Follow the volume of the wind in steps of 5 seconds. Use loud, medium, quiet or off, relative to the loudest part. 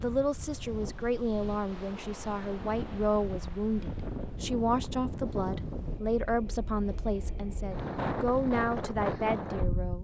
medium, loud.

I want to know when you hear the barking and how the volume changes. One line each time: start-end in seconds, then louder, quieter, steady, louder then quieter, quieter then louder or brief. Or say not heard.
not heard.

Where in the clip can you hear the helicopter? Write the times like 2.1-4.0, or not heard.
not heard.